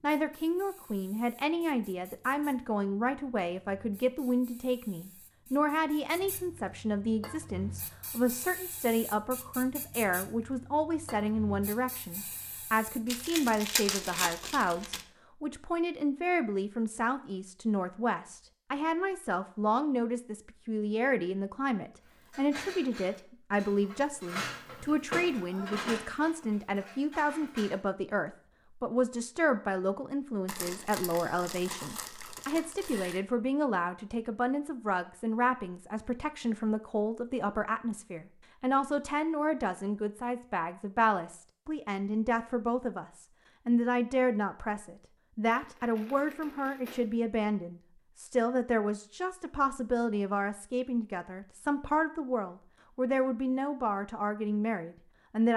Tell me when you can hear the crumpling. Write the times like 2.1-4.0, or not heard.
13.1-15.1, 30.4-33.2, 45.5-47.2.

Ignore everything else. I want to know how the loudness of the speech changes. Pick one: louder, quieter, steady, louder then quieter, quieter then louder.
steady.